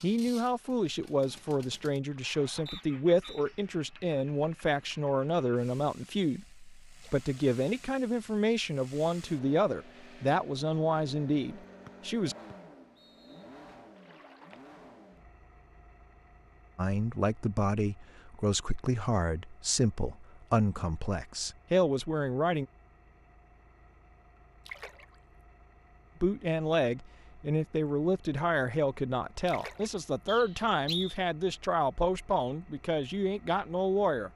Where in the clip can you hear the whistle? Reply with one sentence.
The whistle can be heard from 2.6 to 3.5 s, from 11.8 to 13.6 s and from 30.2 to 31.1 s.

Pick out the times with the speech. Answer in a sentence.
You can hear the speech from 0.0 to 12.3 s, from 16.8 to 22.6 s and from 26.2 to 34.3 s.